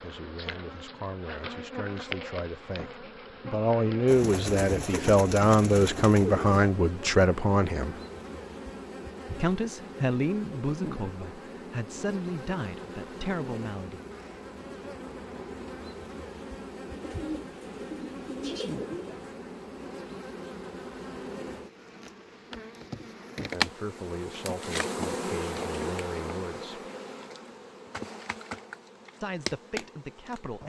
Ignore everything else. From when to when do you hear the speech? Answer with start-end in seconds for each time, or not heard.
0.0-8.0, 9.3-14.0, 23.5-26.8, 29.2-30.6.